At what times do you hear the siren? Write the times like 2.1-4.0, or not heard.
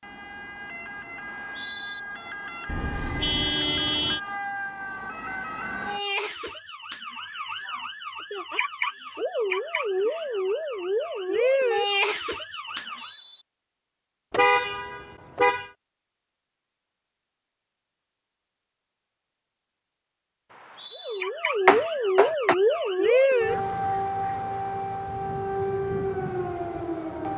0.0-13.1, 20.9-27.3.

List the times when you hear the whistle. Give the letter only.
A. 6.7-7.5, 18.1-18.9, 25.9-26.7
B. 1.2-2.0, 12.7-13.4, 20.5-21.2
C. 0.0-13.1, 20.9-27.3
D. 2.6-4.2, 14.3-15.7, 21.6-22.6
B.